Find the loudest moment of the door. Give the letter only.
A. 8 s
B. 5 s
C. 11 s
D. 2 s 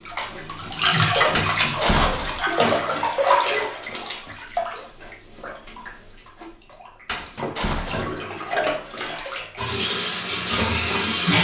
D.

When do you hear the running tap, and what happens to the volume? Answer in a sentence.
The running tap can be heard from 0.0 to 11.3 s, getting quieter then louder.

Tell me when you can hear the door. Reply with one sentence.
The door can be heard from 1.4 to 2.5 s and from 7.0 to 8.2 s.